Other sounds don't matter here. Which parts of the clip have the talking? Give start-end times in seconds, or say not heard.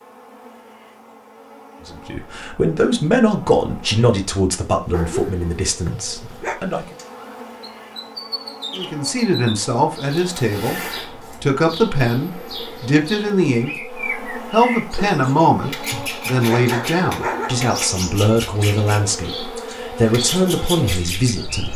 1.9-7.0, 8.8-10.8, 11.4-21.7.